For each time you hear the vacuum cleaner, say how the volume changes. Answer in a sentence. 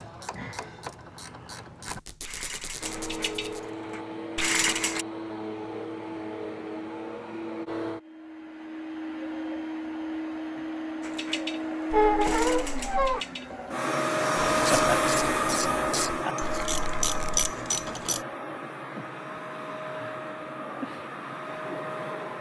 The vacuum cleaner can be heard from 2.8 to 22.3 s, getting louder then quieter.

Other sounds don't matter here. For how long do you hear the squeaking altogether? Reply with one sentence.
You can hear the squeaking for 4 seconds altogether.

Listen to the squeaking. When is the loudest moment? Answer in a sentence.
The loudest moment of the squeaking is at 12 seconds.